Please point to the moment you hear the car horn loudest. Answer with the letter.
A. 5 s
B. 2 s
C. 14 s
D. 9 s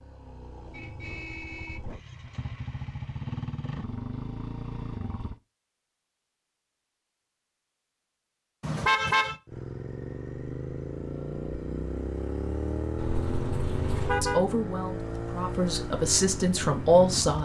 D.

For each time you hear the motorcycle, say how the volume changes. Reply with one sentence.
The motorcycle can be heard from 0.0 to 5.4 s, getting louder; and from 9.4 to 17.4 s, at a steady volume.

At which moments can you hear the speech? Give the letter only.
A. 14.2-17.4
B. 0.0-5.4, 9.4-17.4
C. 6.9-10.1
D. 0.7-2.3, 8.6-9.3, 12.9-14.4
A.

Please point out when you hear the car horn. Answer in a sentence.
The car horn can be heard from 0.7 to 2.3 s, from 8.6 to 9.3 s and from 12.9 to 14.4 s.